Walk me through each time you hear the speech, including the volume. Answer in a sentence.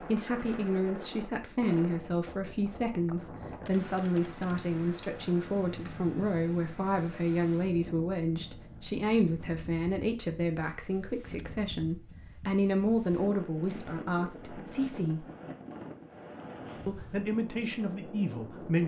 You can hear the speech from 0.0 to 15.2 s, at a steady volume; and briefly from 16.9 to 18.8 s.